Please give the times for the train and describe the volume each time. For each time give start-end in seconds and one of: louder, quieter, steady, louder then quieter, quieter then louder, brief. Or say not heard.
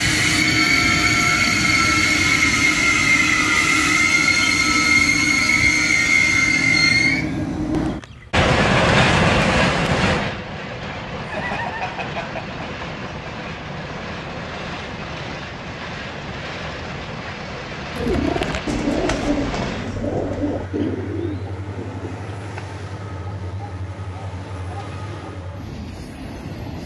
0.0-26.8 quieter.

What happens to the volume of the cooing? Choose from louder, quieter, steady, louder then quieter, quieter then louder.
quieter.